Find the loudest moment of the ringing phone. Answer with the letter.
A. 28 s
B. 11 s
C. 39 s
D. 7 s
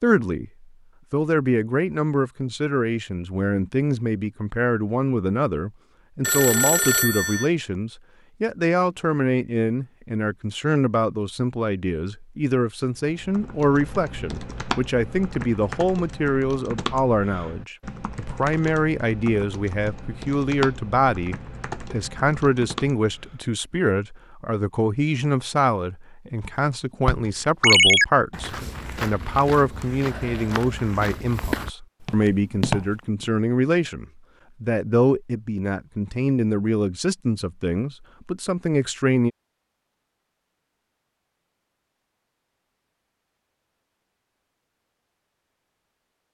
A.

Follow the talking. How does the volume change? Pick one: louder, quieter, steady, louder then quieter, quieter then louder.
steady.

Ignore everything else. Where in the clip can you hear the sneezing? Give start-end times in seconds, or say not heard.
not heard.